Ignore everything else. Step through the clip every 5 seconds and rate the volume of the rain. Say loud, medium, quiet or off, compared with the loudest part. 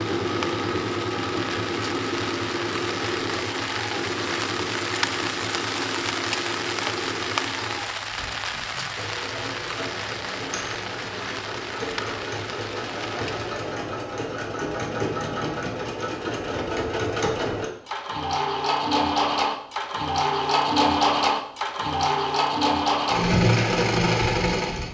loud, loud, medium, off, off.